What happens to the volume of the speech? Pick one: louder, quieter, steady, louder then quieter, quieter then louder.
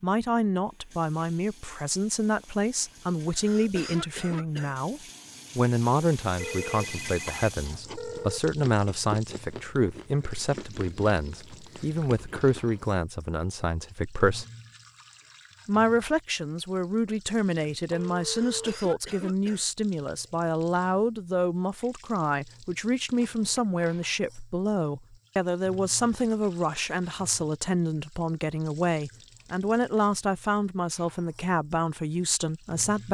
steady.